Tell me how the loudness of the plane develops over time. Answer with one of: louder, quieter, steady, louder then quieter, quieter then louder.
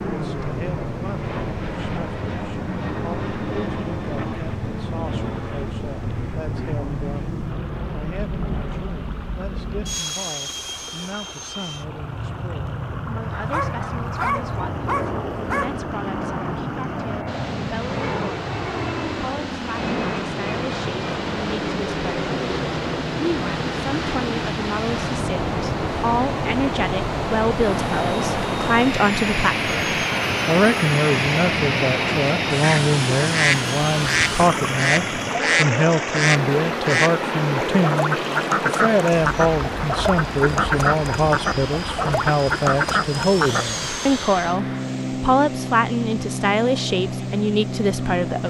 steady.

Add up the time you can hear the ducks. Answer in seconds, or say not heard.
11 s.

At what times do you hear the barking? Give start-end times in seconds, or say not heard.
13.3-15.8.